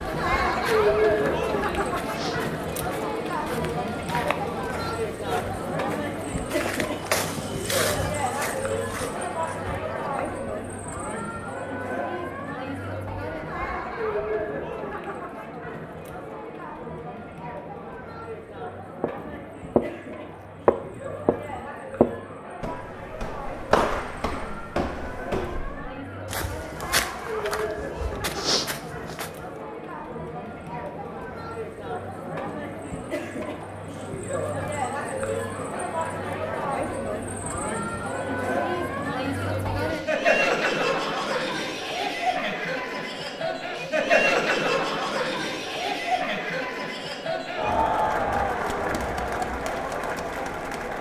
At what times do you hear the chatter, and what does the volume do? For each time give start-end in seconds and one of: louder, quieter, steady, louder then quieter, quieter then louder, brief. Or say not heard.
0.0-50.9 quieter then louder.